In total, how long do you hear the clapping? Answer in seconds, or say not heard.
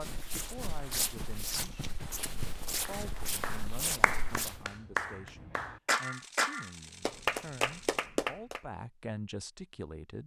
6 s.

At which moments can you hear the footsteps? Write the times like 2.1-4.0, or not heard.
0.0-4.7.